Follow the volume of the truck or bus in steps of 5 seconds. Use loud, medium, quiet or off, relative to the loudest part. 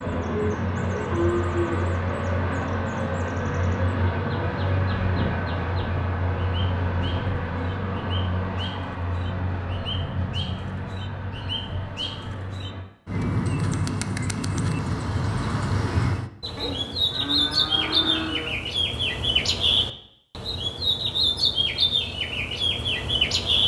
loud, loud, medium, off, off.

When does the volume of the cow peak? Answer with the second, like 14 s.
1 s.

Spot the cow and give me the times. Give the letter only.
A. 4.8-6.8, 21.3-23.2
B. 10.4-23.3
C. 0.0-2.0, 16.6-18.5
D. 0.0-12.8
C.